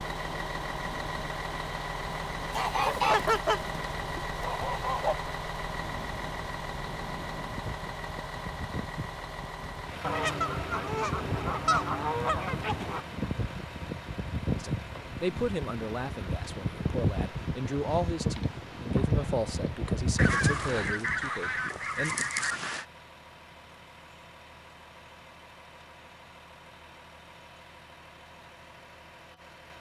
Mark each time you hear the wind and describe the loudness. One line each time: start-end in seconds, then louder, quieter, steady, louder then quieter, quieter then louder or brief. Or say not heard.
0.0-21.2 louder.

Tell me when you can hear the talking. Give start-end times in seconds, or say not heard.
14.6-22.1.